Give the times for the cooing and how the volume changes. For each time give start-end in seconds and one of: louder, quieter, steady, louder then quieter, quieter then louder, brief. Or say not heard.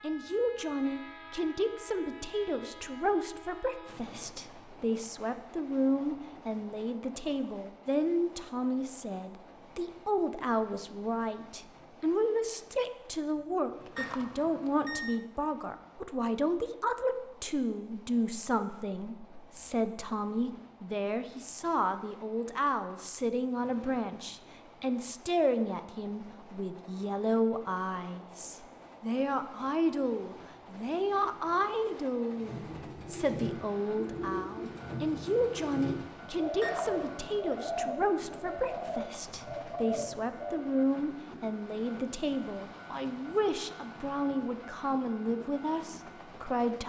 32.4-40.8 steady.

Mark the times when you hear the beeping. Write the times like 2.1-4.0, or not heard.
13.9-15.2, 36.6-37.4.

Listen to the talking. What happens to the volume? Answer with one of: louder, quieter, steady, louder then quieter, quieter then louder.
steady.